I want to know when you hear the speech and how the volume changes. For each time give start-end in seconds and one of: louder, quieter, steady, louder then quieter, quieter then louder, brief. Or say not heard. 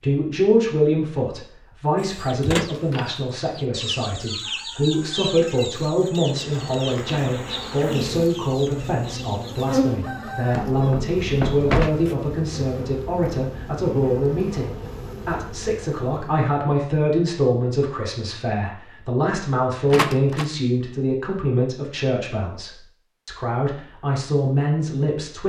0.0-25.4 steady.